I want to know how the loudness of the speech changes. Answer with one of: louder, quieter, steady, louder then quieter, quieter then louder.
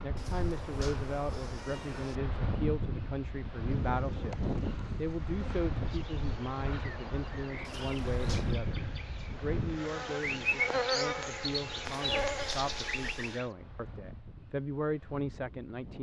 steady.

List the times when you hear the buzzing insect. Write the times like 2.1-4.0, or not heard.
3.6-13.4.